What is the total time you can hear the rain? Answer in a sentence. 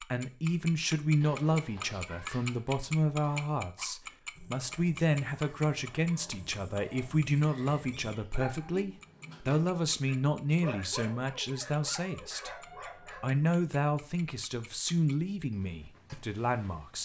You can't hear the rain here.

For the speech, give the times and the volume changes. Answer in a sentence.
You can hear the speech from 0.0 to 16.9 s, at a steady volume.